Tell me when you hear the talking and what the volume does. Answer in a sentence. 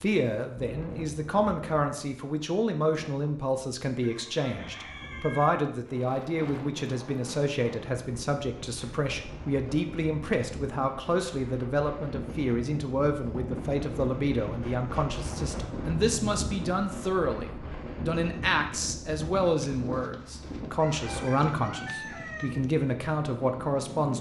You can hear the talking from 0.0 to 24.1 s, at a steady volume.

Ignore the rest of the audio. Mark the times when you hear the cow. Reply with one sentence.
The cow can't be heard in this clip.